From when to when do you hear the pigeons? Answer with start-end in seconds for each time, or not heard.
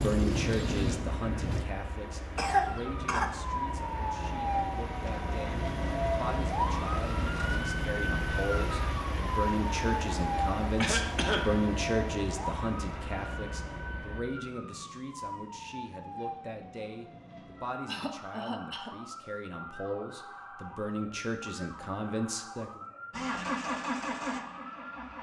0.0-1.6.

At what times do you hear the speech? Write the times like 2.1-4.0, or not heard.
0.0-22.8.